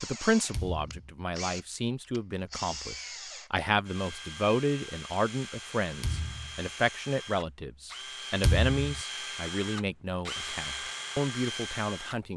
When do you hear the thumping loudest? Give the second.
9 s.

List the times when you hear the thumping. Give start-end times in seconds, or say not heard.
0.5-1.1, 6.0-6.6, 8.4-9.0.